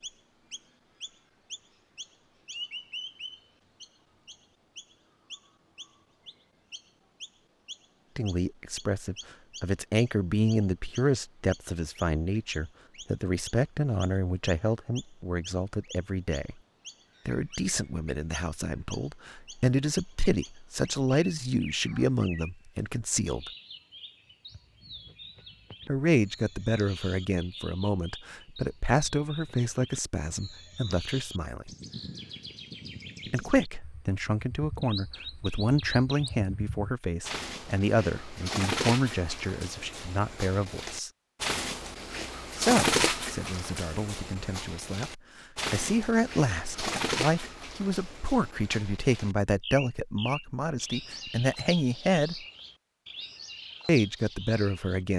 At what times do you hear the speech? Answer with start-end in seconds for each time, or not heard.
8.2-16.6, 17.2-23.5, 25.9-31.7, 33.3-41.1, 42.5-52.4, 53.9-55.1.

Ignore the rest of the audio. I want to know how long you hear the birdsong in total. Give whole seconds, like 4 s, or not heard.
55 s.